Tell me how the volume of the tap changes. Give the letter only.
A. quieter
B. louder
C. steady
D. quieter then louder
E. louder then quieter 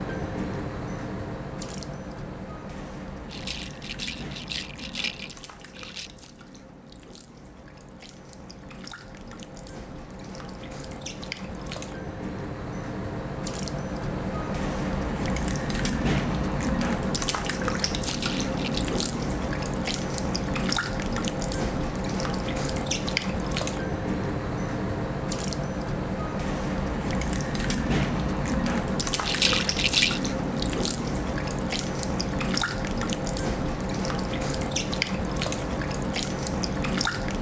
B.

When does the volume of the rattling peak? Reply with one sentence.
The volume of the rattling peaks at 30 seconds.